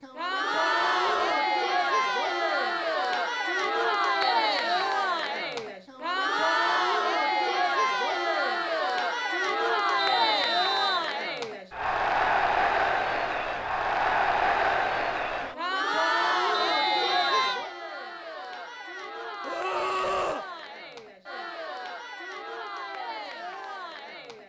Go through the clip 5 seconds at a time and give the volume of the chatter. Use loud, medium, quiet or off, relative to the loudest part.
loud, loud, loud, loud, quiet.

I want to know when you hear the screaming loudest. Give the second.
20 s.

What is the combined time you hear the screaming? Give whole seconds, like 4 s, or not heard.
2 s.